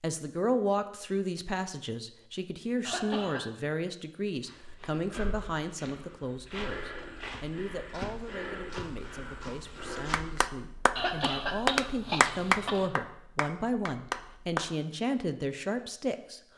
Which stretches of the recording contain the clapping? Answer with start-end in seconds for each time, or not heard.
9.9-14.7.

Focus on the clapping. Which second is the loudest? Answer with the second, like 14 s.
12 s.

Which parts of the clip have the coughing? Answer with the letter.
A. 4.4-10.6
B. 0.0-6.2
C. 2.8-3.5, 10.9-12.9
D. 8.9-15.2
C.